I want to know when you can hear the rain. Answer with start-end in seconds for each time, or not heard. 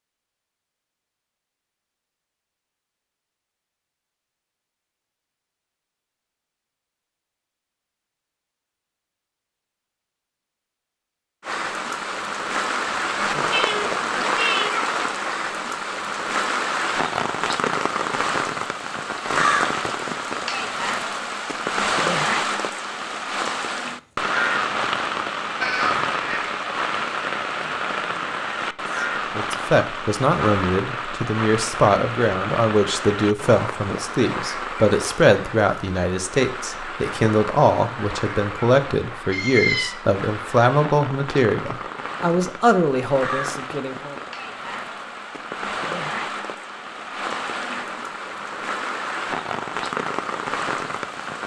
11.4-51.4.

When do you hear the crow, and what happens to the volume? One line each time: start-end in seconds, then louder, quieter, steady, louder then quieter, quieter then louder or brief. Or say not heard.
not heard.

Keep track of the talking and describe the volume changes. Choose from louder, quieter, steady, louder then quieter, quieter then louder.
steady.